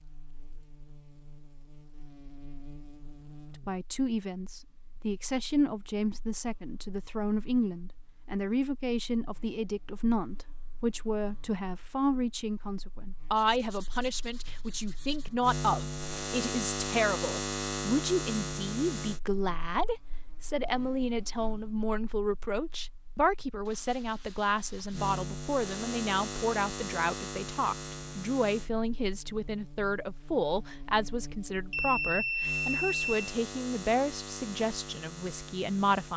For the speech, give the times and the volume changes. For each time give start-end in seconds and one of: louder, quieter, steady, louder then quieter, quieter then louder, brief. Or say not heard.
3.6-36.1 steady.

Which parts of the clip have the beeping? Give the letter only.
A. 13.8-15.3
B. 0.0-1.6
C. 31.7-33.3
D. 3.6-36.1
C.